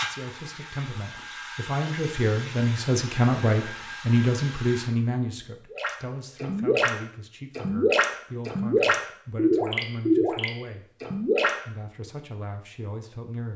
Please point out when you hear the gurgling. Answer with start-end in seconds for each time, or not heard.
5.7-11.6.